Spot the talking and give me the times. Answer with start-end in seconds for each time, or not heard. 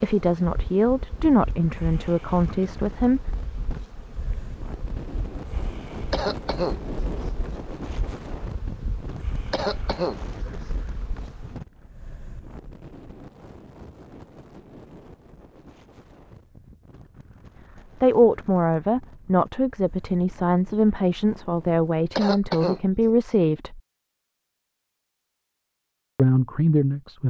0.0-3.2, 18.0-23.8, 26.1-27.2.